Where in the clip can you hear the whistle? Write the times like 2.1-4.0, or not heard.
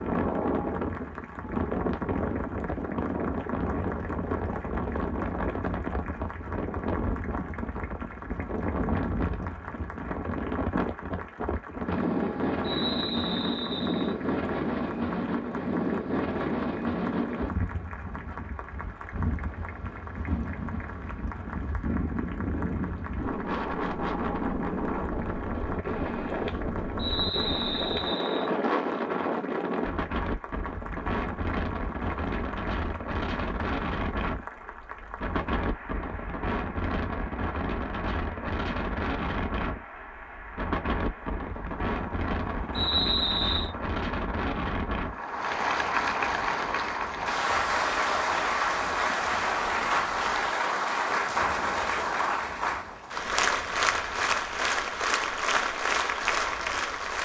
12.6-14.2, 26.9-28.5, 42.7-43.7.